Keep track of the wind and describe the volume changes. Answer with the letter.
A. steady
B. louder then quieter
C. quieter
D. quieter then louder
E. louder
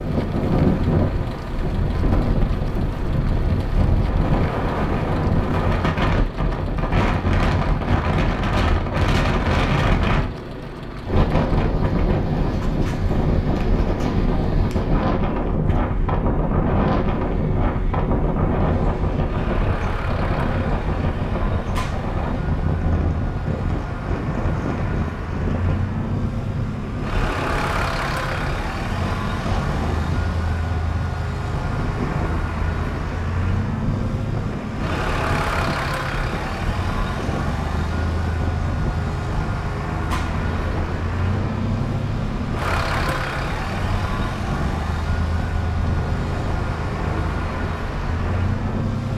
C.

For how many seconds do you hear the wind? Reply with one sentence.
The wind can be heard for 49 seconds in total.